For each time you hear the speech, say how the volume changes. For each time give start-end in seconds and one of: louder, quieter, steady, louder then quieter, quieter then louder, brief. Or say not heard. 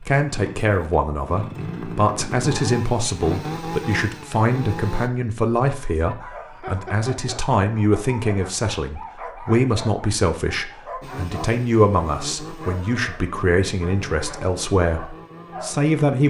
0.0-16.2 steady.